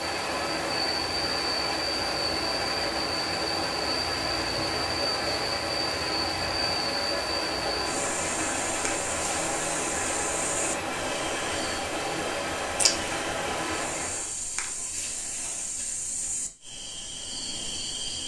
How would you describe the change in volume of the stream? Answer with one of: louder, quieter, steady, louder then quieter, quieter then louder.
steady.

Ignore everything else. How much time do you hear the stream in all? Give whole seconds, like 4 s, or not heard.
14 s.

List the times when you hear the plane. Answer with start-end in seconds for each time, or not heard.
not heard.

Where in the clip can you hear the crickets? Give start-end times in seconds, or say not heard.
0.0-18.2.